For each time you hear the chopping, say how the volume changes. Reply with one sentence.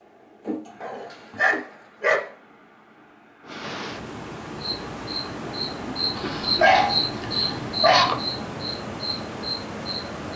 You can't hear the chopping here.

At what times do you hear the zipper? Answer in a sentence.
The zipper can't be heard in this clip.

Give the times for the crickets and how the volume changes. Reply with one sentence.
You can hear the crickets from 4.6 to 10.2 s, getting louder then quieter.